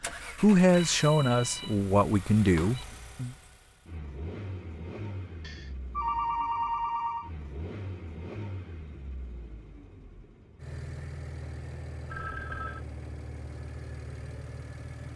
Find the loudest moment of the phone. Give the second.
6 s.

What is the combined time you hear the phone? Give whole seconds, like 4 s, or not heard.
5 s.